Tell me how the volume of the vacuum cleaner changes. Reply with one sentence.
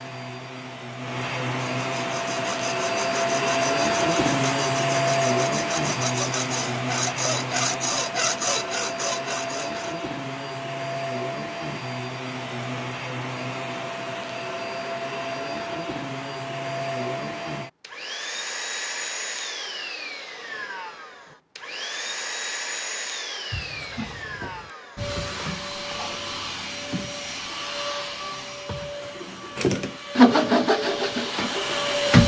The volume of the vacuum cleaner goes down.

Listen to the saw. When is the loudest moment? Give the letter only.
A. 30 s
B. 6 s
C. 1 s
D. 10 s
A.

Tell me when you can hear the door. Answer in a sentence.
The door can be heard from 23.5 to 24.7 s.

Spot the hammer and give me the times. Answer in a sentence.
You can't hear the hammer here.